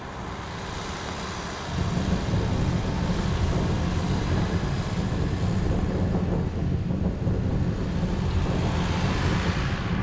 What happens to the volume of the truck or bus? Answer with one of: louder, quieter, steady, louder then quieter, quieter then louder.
quieter then louder.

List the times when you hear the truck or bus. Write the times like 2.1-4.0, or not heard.
0.0-9.9.